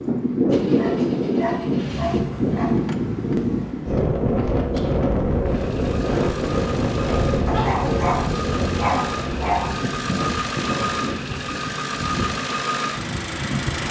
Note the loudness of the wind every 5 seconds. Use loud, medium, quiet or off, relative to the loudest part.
loud, loud, medium.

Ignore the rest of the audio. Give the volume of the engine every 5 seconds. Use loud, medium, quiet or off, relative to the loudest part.
medium, medium, loud.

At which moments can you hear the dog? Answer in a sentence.
You can hear the dog from 0.8 to 2.8 s and from 7.5 to 9.7 s.